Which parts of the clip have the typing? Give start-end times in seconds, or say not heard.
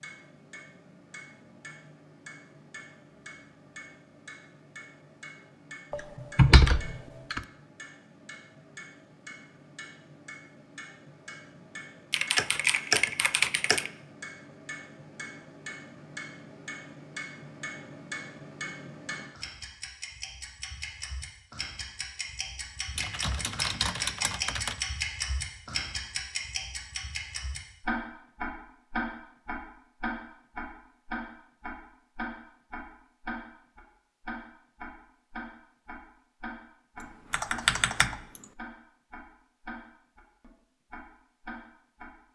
5.9-7.4, 12.1-13.9, 22.9-24.8, 37.3-38.4.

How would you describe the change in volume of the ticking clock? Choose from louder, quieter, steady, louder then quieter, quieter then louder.
louder then quieter.